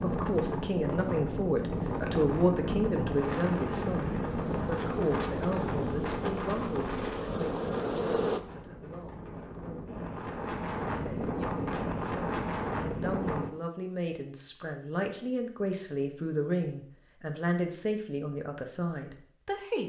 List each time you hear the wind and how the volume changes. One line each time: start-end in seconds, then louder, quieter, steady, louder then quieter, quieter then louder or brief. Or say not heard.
0.0-13.6 quieter then louder.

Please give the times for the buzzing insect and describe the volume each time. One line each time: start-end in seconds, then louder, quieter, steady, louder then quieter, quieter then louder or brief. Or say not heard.
3.4-8.4 louder.